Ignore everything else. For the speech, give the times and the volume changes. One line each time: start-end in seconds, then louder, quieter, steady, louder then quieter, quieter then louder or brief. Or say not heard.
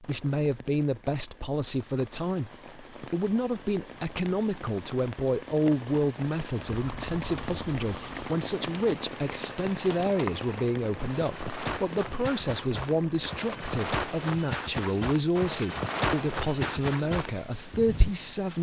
0.0-18.5 steady.